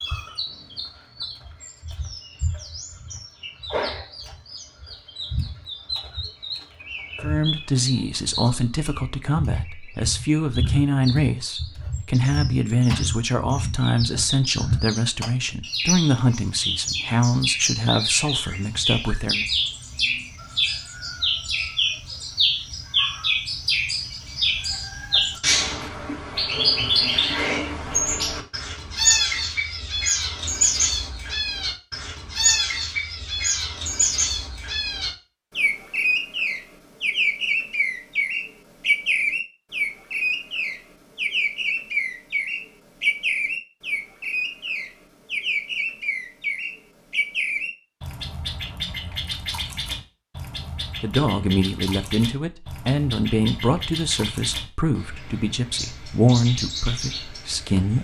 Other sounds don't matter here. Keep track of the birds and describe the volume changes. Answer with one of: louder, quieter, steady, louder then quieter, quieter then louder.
louder then quieter.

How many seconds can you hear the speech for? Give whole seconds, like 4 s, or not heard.
19 s.